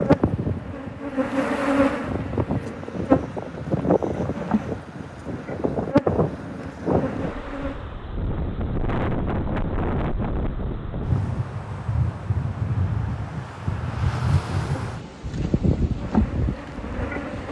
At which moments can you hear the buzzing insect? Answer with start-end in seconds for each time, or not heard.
0.0-7.9, 14.9-17.4.